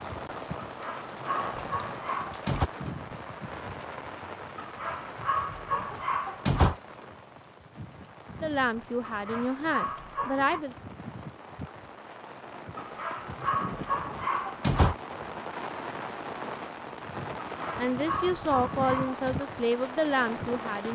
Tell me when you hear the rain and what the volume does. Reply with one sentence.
You can hear the rain from 0.0 to 20.9 s, getting quieter then louder.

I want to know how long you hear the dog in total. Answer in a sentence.
The dog can be heard for 10 seconds in total.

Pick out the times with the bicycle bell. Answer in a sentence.
The bicycle bell can't be heard in this clip.